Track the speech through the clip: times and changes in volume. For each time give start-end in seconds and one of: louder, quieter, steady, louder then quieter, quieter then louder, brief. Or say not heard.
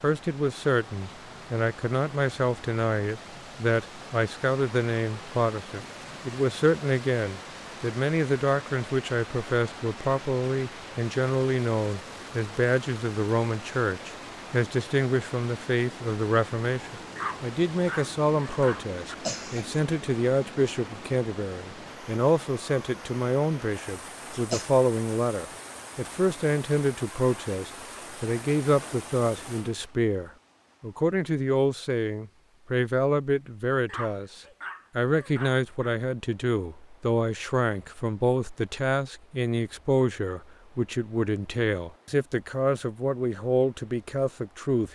0.0-44.9 steady.